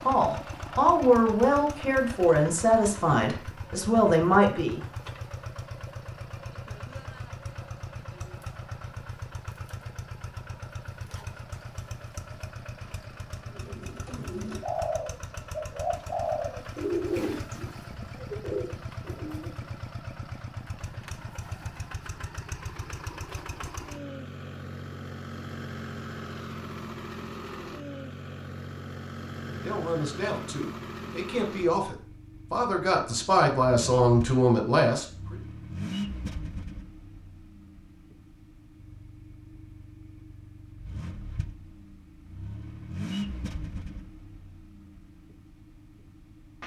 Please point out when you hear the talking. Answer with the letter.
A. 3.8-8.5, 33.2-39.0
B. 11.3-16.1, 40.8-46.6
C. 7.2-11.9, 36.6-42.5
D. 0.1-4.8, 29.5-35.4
D.